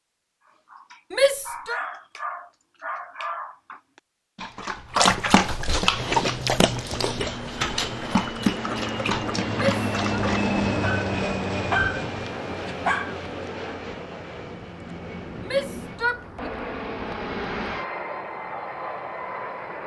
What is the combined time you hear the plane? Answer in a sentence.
You can hear the plane for 14 seconds altogether.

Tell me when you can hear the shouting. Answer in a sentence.
You can hear the shouting from 1.1 to 1.8 s, from 9.6 to 10.2 s and from 15.4 to 16.5 s.